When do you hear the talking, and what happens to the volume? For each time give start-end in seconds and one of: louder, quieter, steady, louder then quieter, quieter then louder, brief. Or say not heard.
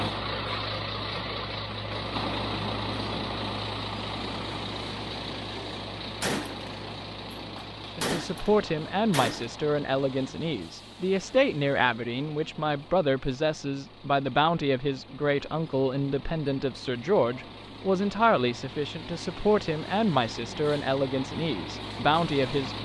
8.0-22.8 steady.